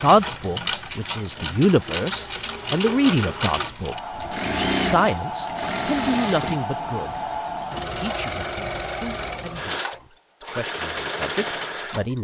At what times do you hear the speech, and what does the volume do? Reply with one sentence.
The speech can be heard from 0.0 to 12.1 s, getting quieter.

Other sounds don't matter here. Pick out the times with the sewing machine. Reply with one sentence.
The sewing machine can be heard from 0.0 to 12.1 s.